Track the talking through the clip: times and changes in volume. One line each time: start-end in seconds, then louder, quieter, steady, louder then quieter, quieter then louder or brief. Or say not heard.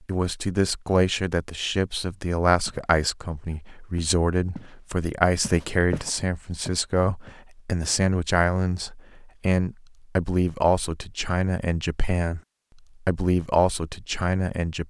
0.1-12.4 steady
13.1-14.8 brief.